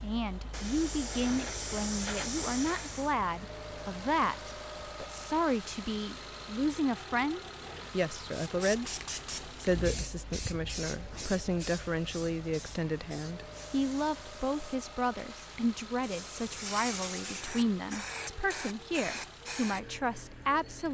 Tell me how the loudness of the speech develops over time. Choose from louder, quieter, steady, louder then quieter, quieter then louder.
steady.